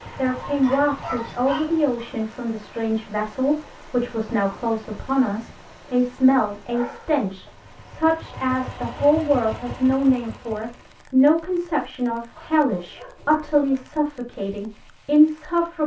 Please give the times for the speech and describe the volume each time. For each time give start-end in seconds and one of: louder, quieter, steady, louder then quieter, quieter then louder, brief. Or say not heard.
0.1-15.8 steady.